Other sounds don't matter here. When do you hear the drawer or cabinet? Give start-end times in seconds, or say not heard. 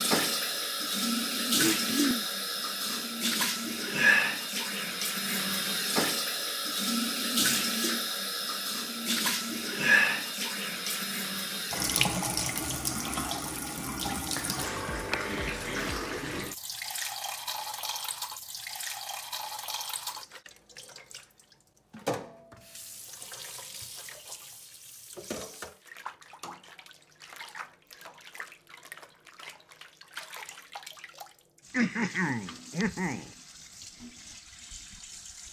not heard.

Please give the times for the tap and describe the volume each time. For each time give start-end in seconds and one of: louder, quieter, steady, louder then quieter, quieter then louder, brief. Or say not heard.
0.0-35.4 quieter.